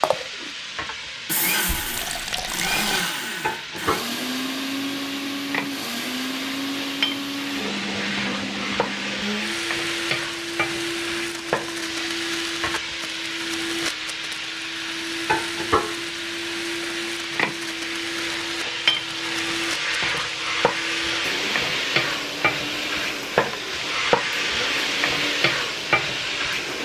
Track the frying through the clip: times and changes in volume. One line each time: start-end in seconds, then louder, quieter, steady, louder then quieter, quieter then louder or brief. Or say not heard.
0.0-26.8 louder.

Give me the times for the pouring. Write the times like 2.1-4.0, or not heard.
1.6-3.1.